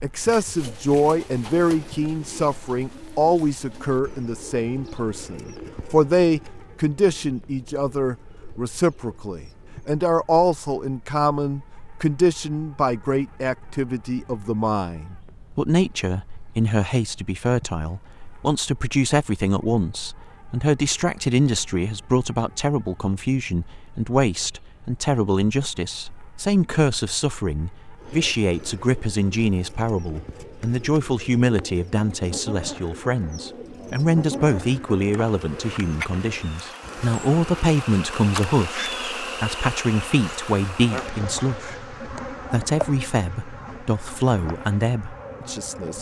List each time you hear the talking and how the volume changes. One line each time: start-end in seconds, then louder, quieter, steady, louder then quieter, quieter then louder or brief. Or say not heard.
0.0-45.9 steady.